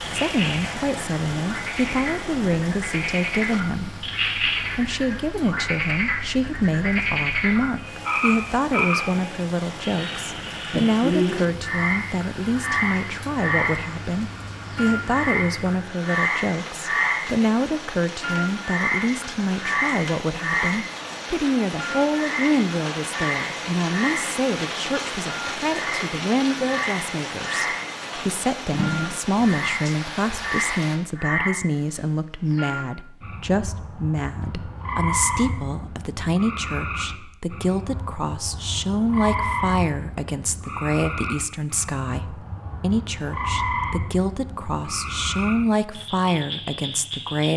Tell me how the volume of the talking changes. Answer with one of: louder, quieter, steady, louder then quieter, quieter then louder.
steady.